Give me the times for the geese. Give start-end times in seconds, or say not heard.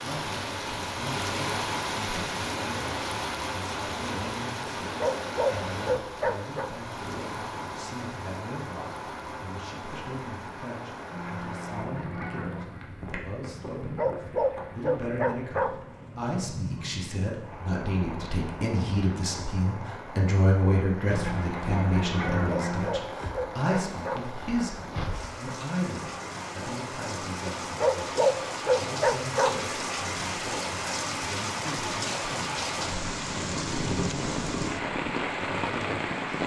11.1-12.7, 21.1-23.0.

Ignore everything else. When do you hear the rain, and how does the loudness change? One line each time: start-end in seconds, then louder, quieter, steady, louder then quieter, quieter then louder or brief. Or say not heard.
0.0-36.4 quieter then louder.